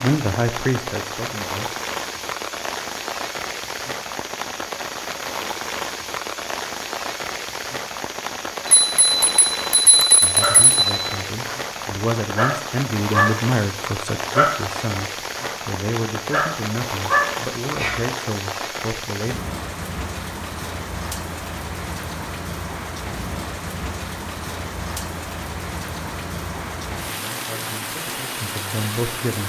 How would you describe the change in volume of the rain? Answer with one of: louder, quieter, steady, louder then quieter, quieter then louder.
steady.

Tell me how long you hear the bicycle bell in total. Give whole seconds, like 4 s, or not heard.
2 s.